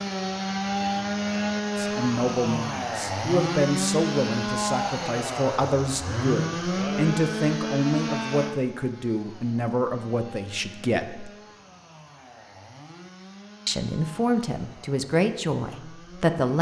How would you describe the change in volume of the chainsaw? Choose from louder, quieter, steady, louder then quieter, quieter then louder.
quieter.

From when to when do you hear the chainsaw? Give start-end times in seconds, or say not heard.
0.0-16.5.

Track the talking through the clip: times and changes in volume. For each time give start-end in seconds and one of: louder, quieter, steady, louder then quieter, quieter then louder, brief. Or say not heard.
1.8-11.3 steady
13.7-16.5 brief.